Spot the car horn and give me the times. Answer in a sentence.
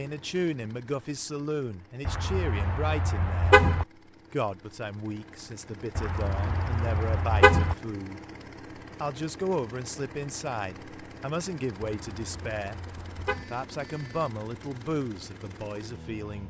You can hear the car horn from 2.0 to 3.9 s, from 6.0 to 7.8 s and from 11.8 to 13.5 s.